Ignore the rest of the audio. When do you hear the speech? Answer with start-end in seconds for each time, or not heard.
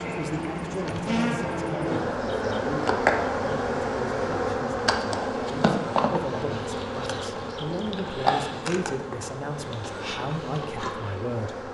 0.0-11.6.